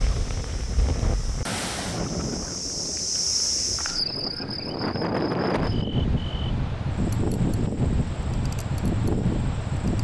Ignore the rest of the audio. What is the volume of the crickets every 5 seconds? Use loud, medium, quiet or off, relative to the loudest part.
loud, quiet.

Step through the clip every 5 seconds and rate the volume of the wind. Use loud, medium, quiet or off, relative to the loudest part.
medium, loud.